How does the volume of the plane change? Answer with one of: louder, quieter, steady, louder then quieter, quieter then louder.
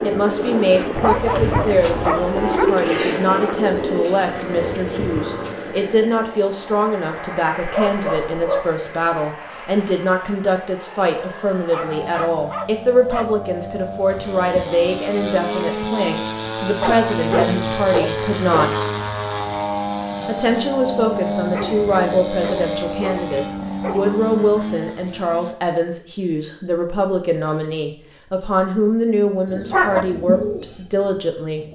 quieter then louder.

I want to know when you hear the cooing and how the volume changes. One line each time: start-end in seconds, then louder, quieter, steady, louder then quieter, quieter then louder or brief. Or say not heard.
0.0-5.5 louder then quieter
29.4-31.7 brief.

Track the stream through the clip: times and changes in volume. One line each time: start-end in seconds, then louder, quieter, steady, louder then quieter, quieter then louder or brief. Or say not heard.
not heard.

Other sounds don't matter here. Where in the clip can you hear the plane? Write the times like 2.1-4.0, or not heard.
0.0-25.6.